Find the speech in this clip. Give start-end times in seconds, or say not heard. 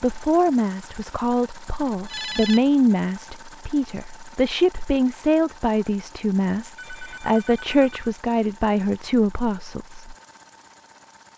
0.0-10.2.